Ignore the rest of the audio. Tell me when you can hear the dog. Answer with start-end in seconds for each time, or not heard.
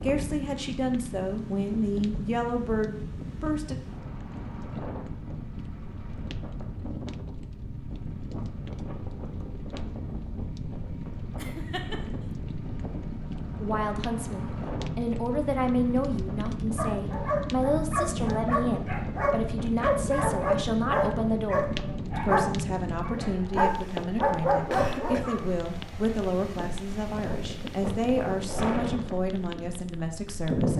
16.8-25.5.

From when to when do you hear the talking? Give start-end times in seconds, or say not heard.
0.0-3.8, 13.6-30.7.